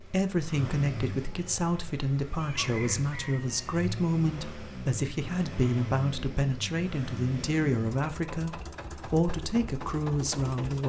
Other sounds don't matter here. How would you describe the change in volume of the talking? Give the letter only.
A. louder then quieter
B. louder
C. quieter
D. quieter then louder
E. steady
E.